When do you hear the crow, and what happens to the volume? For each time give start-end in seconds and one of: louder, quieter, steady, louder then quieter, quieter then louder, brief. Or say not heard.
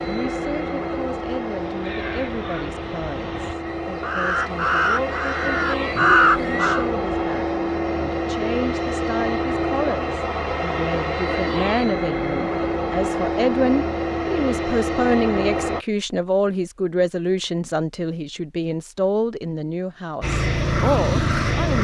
1.5-6.8 louder.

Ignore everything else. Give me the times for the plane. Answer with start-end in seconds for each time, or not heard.
0.0-15.8, 20.2-21.7.